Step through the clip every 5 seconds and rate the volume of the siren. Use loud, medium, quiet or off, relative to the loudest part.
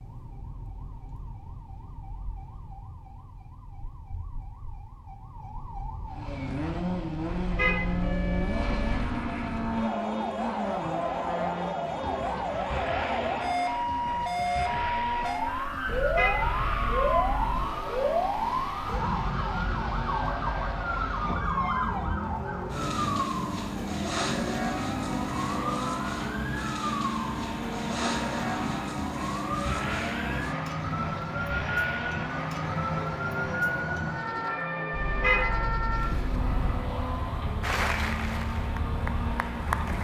quiet, medium, loud, loud, loud, loud, loud, medium.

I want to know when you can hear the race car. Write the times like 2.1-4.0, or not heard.
6.1-39.9.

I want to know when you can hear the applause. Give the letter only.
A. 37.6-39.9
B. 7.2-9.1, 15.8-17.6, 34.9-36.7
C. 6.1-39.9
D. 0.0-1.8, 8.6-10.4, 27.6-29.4
A.